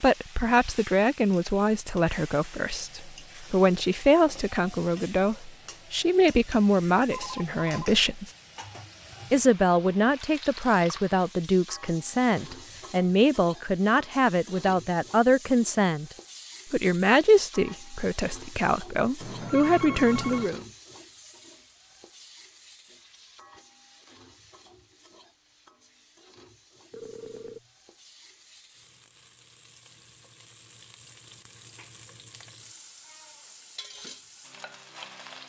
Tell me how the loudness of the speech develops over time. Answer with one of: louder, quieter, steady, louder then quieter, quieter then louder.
steady.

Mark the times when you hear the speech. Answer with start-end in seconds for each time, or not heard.
0.0-8.3, 9.3-16.1, 16.7-20.6.